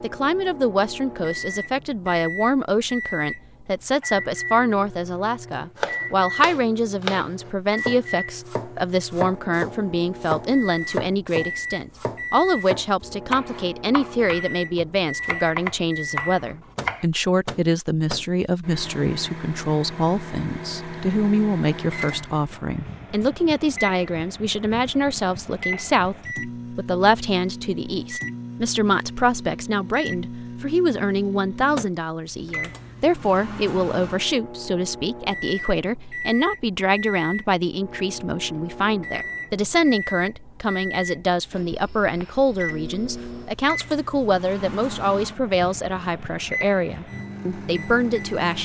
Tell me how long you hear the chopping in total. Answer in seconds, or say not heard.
11 s.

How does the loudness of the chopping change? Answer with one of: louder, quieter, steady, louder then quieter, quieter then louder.
steady.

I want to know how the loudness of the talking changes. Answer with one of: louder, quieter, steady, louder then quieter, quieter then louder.
steady.